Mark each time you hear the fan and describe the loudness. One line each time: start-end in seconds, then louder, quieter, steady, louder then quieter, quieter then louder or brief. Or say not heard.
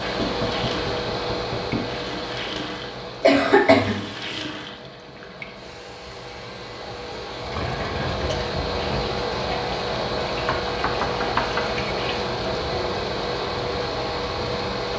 0.0-14.9 quieter then louder.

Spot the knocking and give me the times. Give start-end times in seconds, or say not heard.
0.1-1.9, 7.6-8.4, 10.4-11.6.